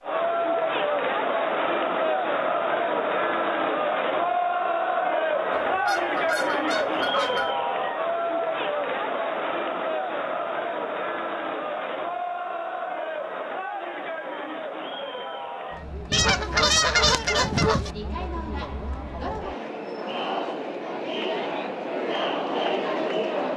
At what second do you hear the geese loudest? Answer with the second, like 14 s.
17 s.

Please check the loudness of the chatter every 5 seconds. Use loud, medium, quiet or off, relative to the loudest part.
loud, loud, medium, medium, loud.